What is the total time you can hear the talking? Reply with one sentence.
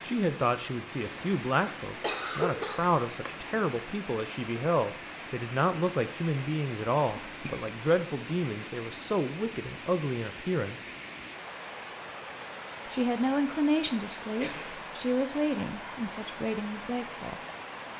The talking can be heard for 15 seconds in total.